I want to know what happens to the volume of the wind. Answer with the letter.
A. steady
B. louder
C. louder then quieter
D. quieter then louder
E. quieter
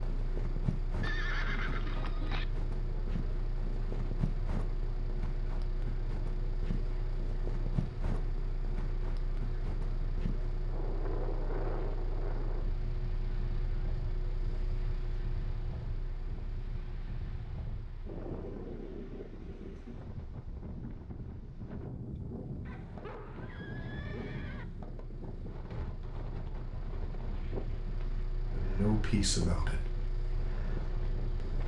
A.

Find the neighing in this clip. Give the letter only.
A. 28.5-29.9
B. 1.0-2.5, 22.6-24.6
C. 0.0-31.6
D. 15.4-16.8
B.